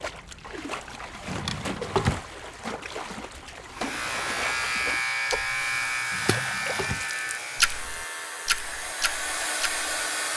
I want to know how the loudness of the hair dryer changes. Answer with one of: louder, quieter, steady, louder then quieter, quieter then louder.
louder.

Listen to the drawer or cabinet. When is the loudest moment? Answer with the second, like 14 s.
2 s.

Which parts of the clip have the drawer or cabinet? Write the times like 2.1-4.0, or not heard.
1.2-2.2, 6.1-7.0.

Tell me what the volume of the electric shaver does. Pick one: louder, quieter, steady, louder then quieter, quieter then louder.
quieter.